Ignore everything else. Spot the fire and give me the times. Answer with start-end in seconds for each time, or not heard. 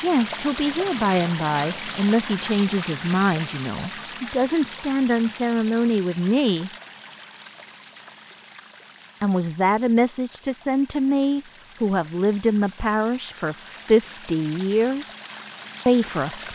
not heard.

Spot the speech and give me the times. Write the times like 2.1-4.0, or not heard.
0.0-6.7, 9.2-15.1, 15.8-16.5.